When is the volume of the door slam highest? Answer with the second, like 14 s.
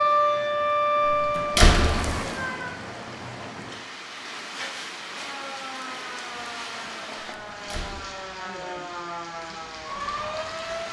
2 s.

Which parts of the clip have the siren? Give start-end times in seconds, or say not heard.
0.0-2.8, 5.0-10.8.